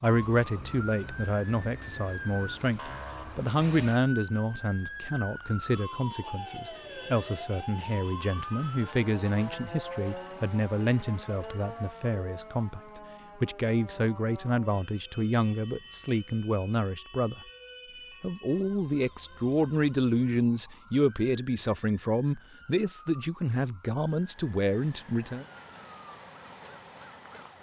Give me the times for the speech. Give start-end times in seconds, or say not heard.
0.0-17.4, 18.2-25.4.